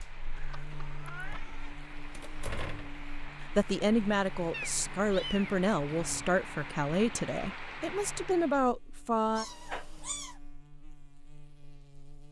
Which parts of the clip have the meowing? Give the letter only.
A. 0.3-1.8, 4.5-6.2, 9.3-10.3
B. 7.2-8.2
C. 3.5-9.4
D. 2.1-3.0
A.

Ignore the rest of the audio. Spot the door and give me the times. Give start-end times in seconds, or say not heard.
2.1-3.0.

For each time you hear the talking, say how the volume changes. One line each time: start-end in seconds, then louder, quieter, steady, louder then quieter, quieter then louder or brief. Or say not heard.
3.5-9.4 steady.